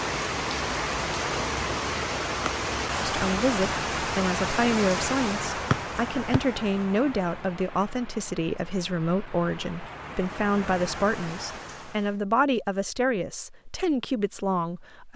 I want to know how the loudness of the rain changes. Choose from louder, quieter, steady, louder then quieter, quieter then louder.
quieter then louder.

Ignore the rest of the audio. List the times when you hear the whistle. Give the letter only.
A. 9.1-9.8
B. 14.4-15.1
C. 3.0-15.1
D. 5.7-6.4
D.